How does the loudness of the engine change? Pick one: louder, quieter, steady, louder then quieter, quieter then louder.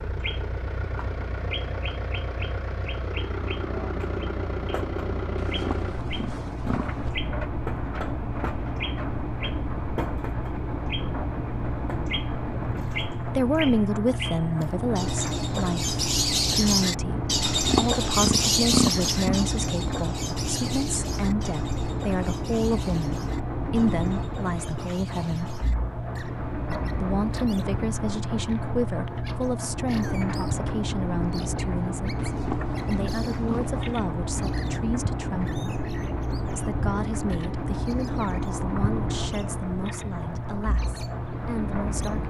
steady.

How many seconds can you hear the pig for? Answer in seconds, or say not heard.
6 s.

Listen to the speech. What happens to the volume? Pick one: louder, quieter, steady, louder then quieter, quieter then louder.
quieter.